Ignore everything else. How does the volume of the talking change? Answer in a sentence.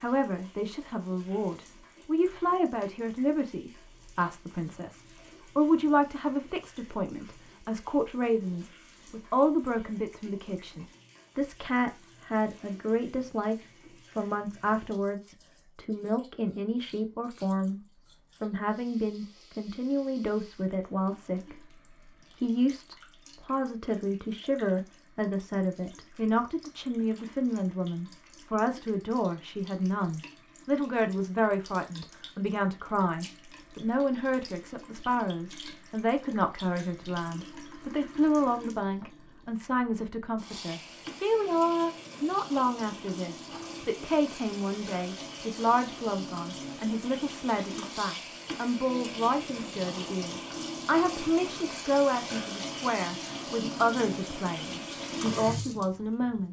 The loudness of the talking stays about the same.